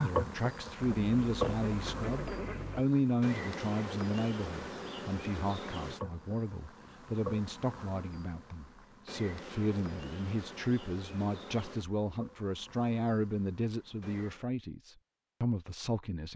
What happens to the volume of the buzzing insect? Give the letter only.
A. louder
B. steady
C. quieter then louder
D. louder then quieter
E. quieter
E.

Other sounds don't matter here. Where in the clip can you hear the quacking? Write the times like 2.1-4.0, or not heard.
0.8-2.9.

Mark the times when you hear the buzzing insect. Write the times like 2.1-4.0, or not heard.
0.0-14.4.